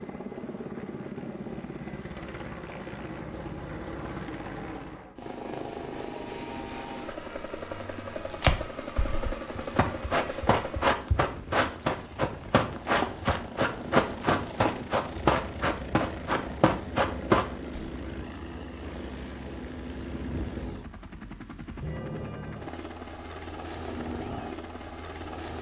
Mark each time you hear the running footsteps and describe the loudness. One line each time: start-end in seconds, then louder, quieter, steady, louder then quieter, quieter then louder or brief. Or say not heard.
8.2-17.9 louder.